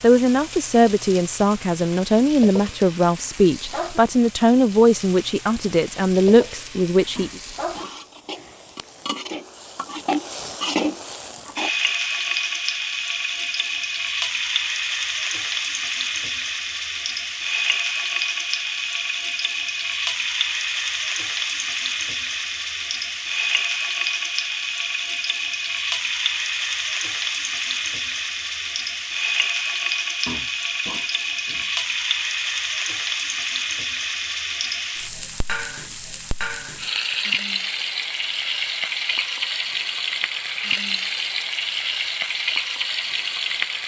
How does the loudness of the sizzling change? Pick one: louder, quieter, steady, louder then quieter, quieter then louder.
louder.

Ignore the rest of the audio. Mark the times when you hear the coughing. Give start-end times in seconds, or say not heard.
7.2-8.6, 30.2-31.7.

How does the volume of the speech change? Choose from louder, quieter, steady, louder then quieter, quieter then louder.
steady.